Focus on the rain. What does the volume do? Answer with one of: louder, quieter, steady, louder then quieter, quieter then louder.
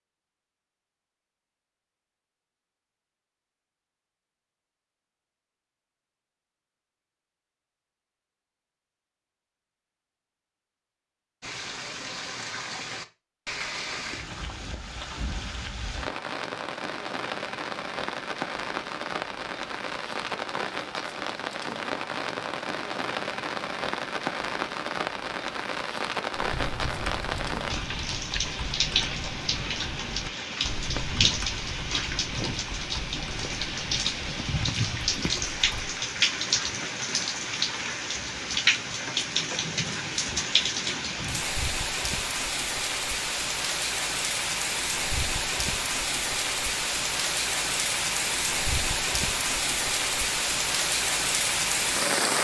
louder.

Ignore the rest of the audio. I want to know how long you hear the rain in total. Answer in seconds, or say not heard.
41 s.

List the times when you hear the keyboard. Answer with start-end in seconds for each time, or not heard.
26.4-36.0.